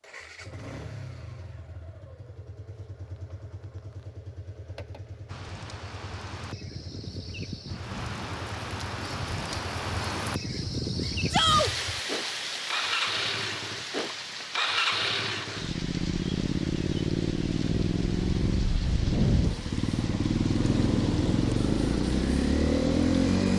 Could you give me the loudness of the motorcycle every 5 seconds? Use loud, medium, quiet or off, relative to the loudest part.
quiet, quiet, medium, loud, loud.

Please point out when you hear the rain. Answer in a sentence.
The rain can be heard from 5.2 to 23.5 s.